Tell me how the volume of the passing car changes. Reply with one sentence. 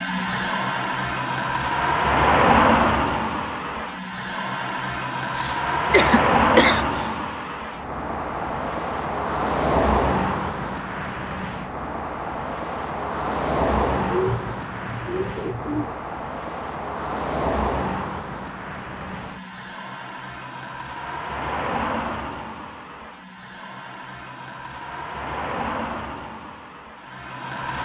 The volume of the passing car goes down.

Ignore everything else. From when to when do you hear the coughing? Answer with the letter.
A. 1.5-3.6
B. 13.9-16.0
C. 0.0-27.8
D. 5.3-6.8
D.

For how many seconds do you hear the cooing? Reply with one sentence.
You can hear the cooing for 2 seconds altogether.